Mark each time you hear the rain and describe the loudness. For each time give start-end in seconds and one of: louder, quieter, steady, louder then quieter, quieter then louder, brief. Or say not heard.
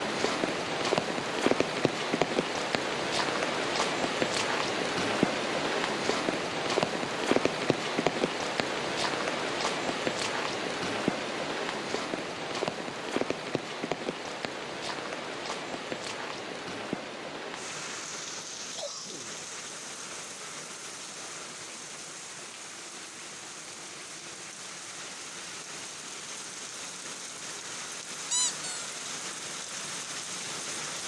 0.0-31.0 quieter.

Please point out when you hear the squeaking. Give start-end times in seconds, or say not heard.
28.3-28.9.